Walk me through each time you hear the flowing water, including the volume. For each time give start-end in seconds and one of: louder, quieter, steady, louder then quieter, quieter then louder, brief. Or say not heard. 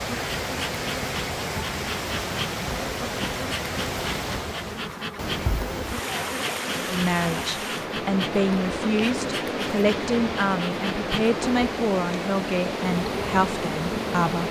0.0-14.4 steady.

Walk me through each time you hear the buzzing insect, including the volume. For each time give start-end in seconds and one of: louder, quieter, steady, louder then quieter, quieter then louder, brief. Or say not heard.
0.0-14.4 steady.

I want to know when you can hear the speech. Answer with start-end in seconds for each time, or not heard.
6.8-14.4.